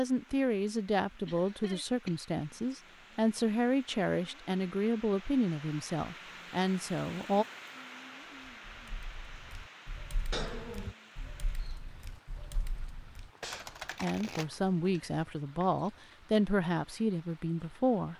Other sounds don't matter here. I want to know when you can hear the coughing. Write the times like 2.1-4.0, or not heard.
1.2-2.2, 10.3-10.9.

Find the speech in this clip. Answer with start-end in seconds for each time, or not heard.
0.0-7.5, 14.0-18.1.